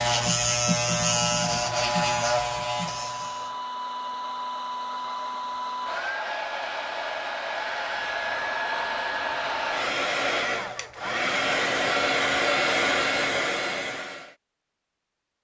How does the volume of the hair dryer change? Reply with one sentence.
The loudness of the hair dryer goes up.